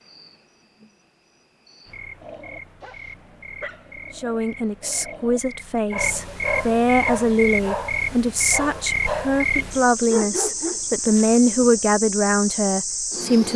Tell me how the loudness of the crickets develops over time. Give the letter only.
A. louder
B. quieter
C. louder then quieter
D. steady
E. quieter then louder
A.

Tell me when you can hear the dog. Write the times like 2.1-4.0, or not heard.
2.2-11.7.